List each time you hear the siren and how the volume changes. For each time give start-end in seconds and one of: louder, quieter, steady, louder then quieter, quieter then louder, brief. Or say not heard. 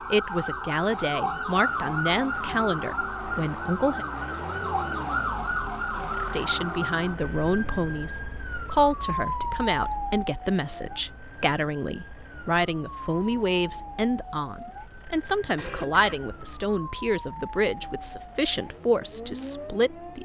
0.0-20.2 quieter.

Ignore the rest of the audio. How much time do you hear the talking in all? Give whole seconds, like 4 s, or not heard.
18 s.